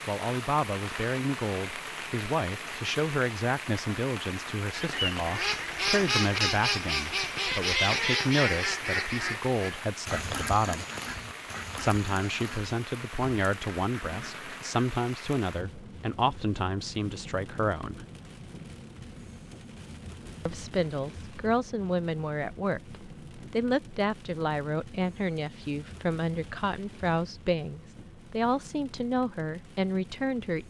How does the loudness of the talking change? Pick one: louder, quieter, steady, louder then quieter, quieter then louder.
steady.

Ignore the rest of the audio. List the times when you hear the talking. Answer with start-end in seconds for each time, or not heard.
0.1-10.8, 11.8-18.1, 20.4-30.6.